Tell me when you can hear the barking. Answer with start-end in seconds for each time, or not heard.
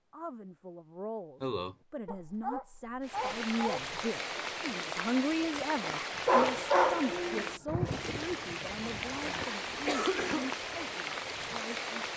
2.0-3.9, 6.2-7.5.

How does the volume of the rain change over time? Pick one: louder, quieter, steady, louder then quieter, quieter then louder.
steady.